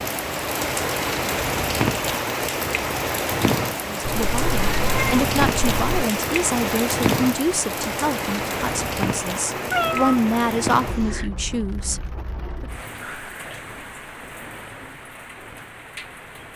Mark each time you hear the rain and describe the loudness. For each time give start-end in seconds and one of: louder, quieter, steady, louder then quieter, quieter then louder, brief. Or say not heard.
0.0-16.5 quieter.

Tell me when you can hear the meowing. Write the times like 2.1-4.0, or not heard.
4.0-6.0, 9.5-11.3.